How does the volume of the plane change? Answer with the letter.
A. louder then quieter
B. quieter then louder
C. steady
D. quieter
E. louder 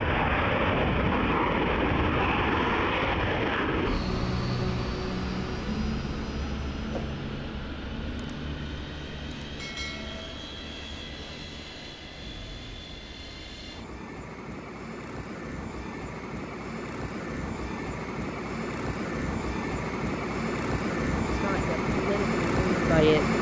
B.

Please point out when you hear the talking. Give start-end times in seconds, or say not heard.
21.3-23.2.